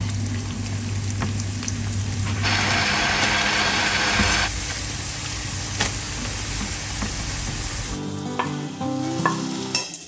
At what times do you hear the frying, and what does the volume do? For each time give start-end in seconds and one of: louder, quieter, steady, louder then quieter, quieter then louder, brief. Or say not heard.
0.0-10.0 steady.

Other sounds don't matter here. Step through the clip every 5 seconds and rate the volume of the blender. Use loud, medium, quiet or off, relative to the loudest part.
loud, off.